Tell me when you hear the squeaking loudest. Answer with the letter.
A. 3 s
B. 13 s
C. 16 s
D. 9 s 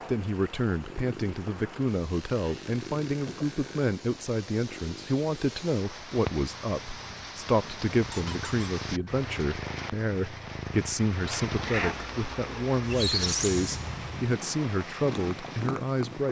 B.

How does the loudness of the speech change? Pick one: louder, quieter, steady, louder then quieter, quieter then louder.
steady.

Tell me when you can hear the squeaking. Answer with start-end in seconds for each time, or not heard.
2.0-3.9, 8.1-8.7, 12.8-14.2.